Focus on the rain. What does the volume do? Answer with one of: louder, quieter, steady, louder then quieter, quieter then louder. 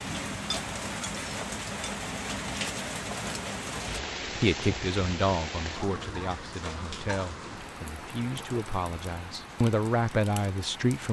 quieter.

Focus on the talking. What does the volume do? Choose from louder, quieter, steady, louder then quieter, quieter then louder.
quieter then louder.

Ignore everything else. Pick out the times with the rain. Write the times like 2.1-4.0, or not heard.
0.0-11.0.